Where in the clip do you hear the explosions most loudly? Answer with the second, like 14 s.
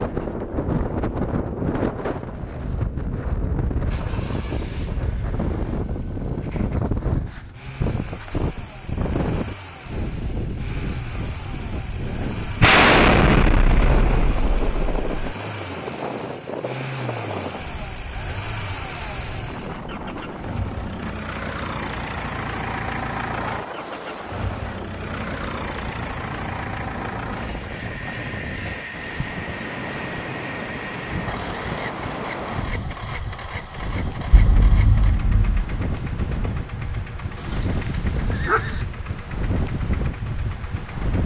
13 s.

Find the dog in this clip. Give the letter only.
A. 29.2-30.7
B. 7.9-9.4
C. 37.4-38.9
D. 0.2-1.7
C.